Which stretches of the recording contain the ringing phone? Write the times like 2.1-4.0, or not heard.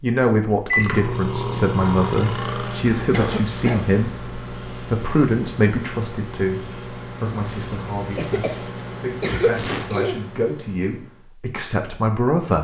not heard.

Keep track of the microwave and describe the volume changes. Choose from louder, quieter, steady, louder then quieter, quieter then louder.
quieter.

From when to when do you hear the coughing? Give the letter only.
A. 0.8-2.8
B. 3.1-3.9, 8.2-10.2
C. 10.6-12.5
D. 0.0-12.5
B.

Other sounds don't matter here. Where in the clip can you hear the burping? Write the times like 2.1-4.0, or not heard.
0.8-2.8.